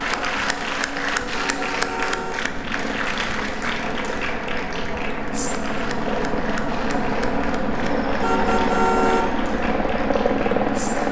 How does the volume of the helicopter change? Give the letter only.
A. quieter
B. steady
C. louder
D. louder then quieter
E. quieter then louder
C.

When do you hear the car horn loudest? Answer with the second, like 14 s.
9 s.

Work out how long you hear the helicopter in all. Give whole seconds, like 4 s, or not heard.
11 s.